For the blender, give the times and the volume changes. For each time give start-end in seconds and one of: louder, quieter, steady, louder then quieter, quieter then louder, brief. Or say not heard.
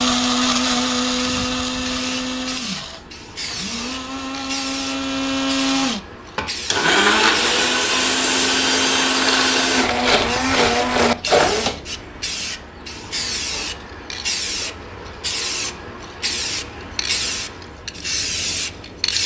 0.0-11.8 quieter then louder.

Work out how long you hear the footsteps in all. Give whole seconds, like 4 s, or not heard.
not heard.